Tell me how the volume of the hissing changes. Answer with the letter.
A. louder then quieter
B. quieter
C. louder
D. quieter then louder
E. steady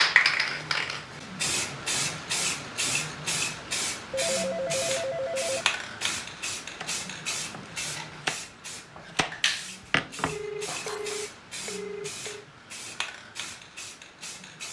B.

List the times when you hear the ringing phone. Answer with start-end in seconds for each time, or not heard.
4.1-5.7, 10.2-12.4.